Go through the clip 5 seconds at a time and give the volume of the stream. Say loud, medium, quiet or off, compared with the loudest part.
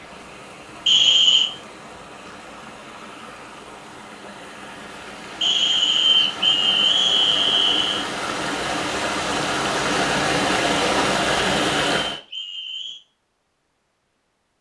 quiet, medium, loud.